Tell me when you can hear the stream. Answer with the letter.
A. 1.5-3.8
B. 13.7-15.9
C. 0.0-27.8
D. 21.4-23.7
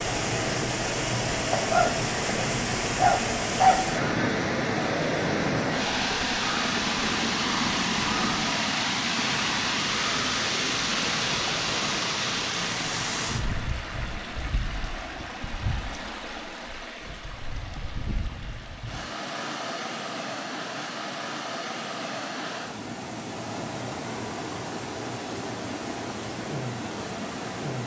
C.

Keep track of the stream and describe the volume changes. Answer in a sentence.
The loudness of the stream goes down.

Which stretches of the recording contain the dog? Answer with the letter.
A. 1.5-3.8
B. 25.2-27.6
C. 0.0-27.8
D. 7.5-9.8
A.